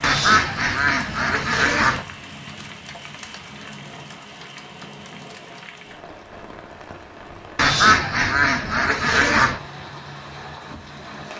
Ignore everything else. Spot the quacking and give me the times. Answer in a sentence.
You can hear the quacking from 0.0 to 2.0 s and from 7.5 to 9.6 s.